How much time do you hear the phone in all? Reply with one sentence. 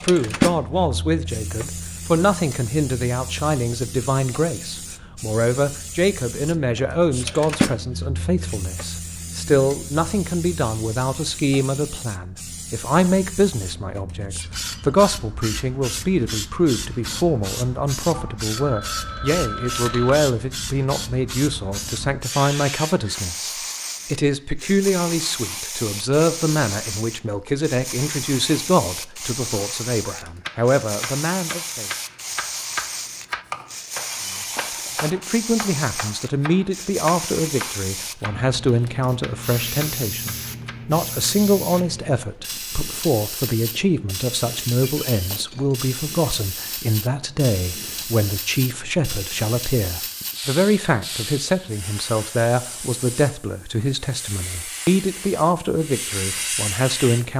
The phone can be heard for 2 seconds in total.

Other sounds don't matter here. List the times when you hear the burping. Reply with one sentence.
You can't hear the burping here.